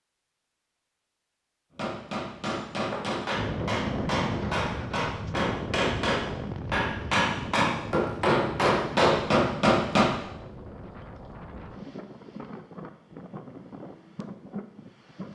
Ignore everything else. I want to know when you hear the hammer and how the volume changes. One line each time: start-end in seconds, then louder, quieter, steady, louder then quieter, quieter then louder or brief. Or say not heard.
1.8-10.1 louder.